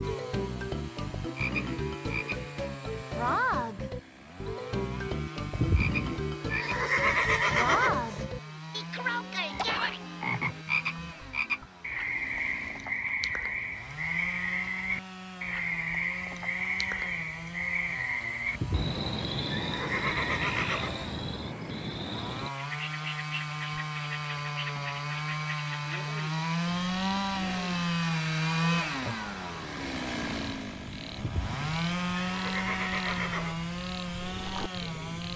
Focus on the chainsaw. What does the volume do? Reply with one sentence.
The loudness of the chainsaw goes up.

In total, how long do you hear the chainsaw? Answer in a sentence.
You can hear the chainsaw for 35 seconds altogether.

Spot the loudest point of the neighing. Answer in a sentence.
The loudest moment of the neighing is at 7 seconds.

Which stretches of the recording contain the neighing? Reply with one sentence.
The neighing can be heard from 5.5 to 8.2 s, from 18.6 to 20.9 s and from 31.1 to 33.5 s.